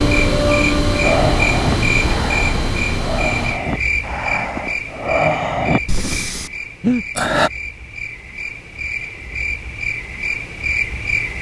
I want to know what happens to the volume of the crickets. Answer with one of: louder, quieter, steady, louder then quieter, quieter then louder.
quieter then louder.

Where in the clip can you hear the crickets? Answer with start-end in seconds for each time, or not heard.
0.0-11.3.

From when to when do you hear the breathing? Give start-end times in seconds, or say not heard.
1.0-7.5.